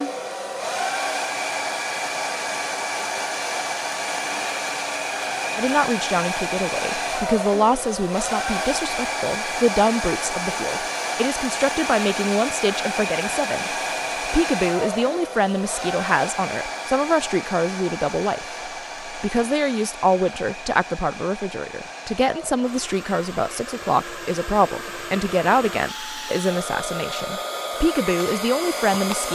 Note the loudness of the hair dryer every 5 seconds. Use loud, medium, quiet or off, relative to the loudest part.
loud, loud, loud, medium, medium, loud.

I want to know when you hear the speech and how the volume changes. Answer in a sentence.
You can hear the speech from 5.5 to 29.3 s, at a steady volume.